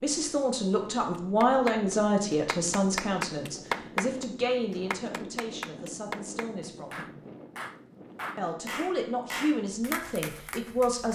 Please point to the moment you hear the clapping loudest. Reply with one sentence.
The volume of the clapping peaks at 4 seconds.